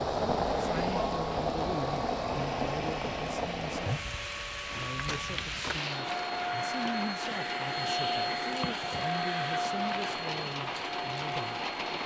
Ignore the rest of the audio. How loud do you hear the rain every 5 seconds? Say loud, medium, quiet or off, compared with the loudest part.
loud, medium, medium.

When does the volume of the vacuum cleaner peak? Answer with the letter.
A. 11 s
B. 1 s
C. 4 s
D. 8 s
D.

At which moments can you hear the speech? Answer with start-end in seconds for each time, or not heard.
0.6-11.6.